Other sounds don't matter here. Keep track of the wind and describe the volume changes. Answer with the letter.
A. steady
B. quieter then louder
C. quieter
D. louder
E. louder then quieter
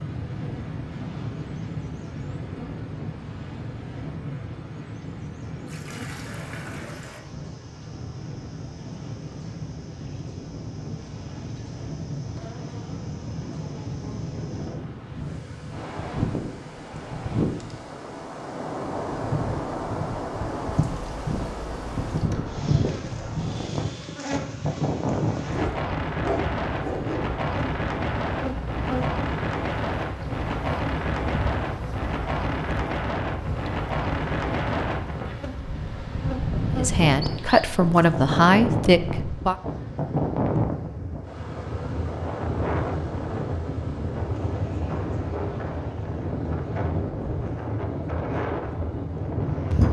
D.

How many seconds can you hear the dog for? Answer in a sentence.
You can hear the dog for 2 seconds altogether.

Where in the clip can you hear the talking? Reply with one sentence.
You can hear the talking from 36.7 to 39.5 s.